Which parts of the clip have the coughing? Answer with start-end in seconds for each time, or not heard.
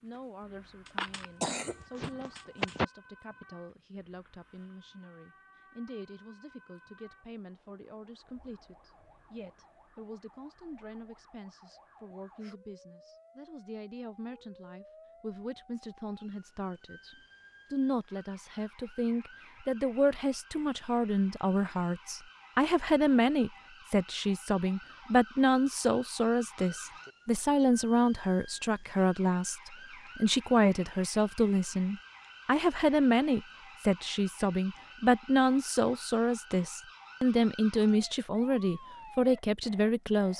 0.8-2.9.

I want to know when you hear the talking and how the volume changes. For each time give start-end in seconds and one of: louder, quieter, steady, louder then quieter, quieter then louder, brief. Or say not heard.
0.0-40.3 louder.